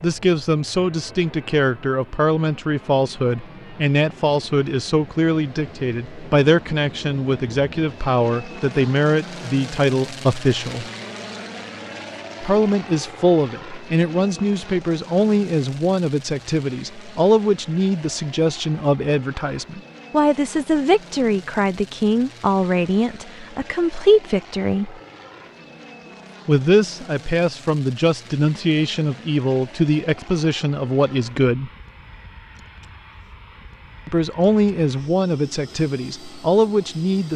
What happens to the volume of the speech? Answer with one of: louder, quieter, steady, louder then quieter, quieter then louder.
steady.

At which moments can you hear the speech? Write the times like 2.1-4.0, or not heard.
0.0-10.8, 12.4-24.9, 26.4-31.7, 34.0-37.3.